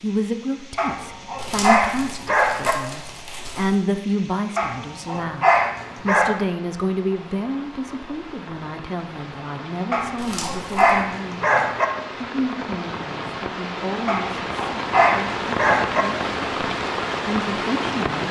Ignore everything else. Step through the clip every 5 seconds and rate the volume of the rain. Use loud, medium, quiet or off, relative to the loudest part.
quiet, quiet, medium, loud.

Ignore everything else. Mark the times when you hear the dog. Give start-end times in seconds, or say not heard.
0.8-2.8, 4.5-6.3, 9.9-11.8, 14.1-16.1.